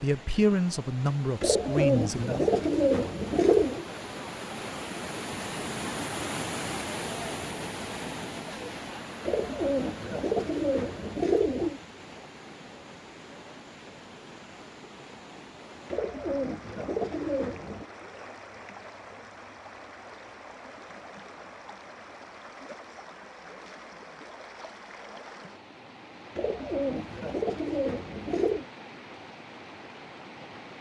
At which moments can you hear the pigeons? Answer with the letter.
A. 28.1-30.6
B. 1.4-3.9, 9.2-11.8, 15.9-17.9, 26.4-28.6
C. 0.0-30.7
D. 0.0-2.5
B.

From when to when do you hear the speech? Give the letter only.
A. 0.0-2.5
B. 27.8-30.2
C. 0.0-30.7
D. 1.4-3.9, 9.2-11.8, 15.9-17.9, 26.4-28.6
A.